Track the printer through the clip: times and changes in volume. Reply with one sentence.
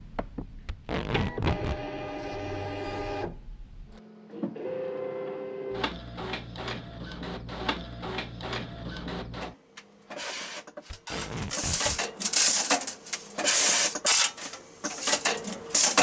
You can hear the printer from 0.0 to 15.9 s, getting louder.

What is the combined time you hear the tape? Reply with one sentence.
You can hear the tape for 2 seconds altogether.